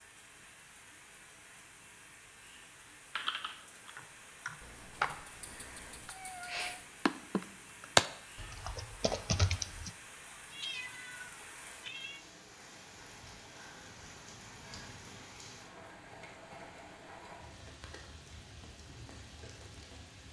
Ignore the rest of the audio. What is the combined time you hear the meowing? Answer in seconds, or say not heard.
4 s.